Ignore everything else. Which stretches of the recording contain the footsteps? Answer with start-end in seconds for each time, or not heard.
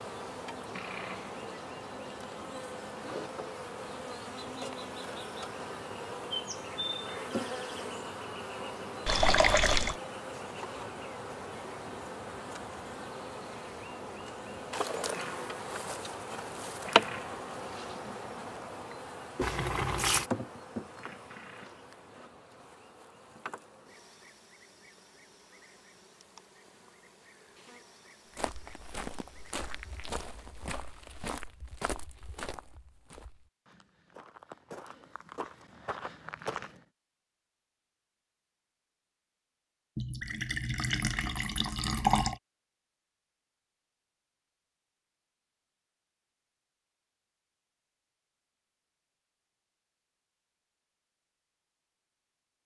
28.3-36.8.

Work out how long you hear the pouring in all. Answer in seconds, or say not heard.
4 s.